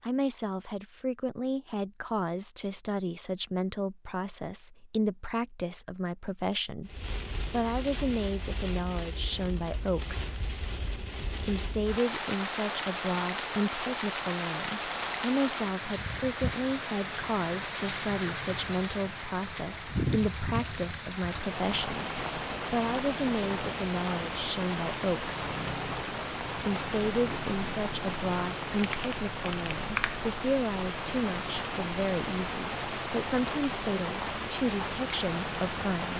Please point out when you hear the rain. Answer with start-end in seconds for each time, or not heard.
6.8-36.1.